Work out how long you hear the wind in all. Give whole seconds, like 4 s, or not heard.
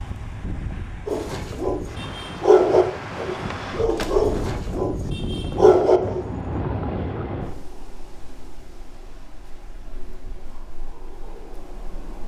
12 s.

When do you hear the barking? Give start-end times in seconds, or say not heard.
1.1-6.3.